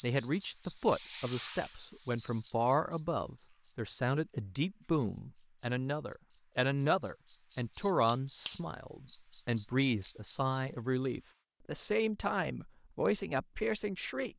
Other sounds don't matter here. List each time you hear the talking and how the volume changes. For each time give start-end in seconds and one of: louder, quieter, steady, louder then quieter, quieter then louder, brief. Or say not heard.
0.0-14.3 steady.